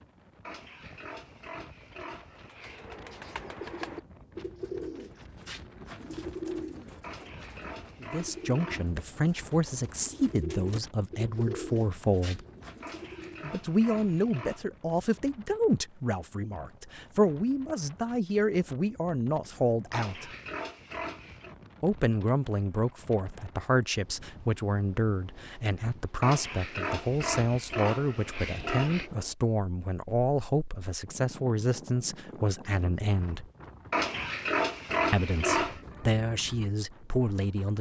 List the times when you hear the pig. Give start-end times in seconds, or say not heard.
0.5-3.0, 7.0-8.9, 12.8-14.7, 19.9-21.6, 26.2-29.1, 33.9-35.8.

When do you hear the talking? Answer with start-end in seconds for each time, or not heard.
8.0-12.4, 13.4-20.3, 21.8-33.5, 35.1-37.7.